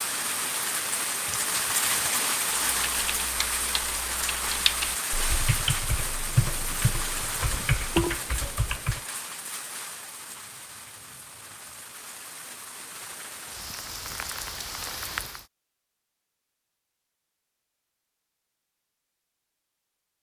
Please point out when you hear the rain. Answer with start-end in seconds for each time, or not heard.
0.0-15.4.